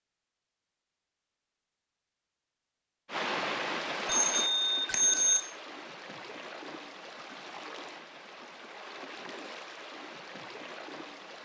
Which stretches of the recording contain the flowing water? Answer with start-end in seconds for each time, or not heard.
3.0-11.4.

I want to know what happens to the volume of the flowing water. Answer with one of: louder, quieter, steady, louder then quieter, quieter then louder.
quieter.